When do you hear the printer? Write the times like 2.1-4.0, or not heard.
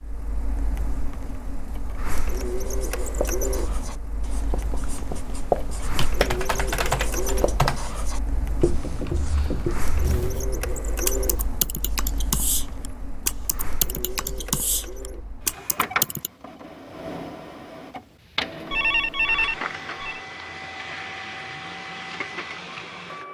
0.0-23.2.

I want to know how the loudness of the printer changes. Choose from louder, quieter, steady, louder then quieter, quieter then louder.
steady.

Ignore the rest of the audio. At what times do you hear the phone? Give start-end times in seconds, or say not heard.
18.7-20.2.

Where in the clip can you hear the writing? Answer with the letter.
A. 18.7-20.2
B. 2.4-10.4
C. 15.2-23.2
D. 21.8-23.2
B.